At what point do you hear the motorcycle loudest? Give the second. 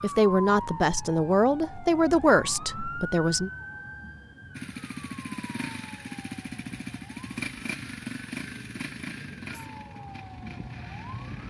8 s.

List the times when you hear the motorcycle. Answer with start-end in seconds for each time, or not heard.
4.5-11.4.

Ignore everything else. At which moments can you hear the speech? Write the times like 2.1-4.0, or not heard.
0.0-3.5.